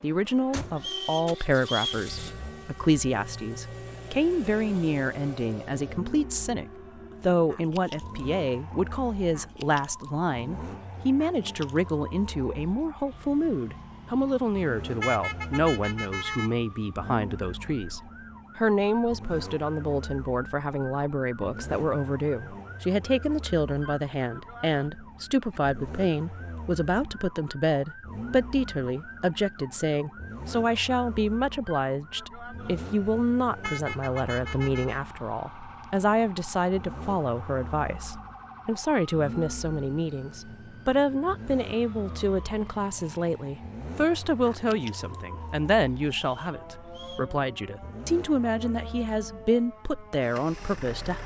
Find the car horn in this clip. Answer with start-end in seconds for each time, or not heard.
15.0-16.5, 33.6-35.0.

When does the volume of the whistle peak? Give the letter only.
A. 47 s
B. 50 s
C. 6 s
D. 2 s
D.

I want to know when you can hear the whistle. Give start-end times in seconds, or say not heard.
0.8-2.0, 46.2-47.4.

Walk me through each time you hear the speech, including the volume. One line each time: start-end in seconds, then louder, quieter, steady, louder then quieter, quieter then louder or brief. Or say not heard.
0.0-51.2 steady.